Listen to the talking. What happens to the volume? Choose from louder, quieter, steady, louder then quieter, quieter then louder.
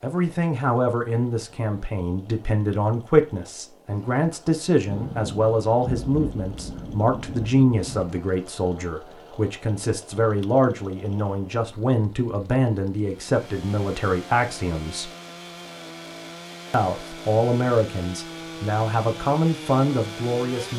steady.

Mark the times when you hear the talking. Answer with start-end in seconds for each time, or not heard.
0.0-15.1, 16.7-20.7.